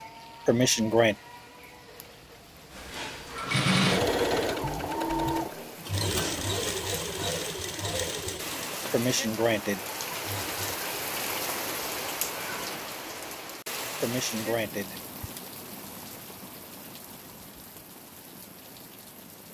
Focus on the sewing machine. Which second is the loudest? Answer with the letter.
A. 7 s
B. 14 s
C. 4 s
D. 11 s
C.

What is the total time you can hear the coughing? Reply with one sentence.
You can hear the coughing for 3 seconds altogether.